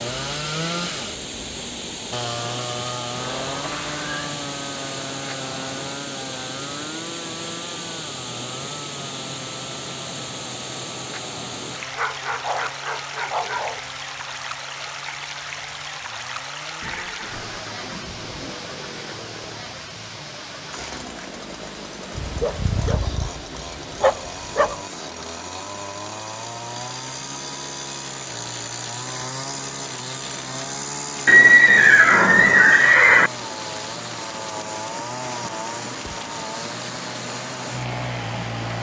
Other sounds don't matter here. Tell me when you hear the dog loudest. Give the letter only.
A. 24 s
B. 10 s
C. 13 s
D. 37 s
A.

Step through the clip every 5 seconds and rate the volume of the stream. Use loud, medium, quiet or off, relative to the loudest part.
loud, loud, loud, loud, medium, medium, medium, loud.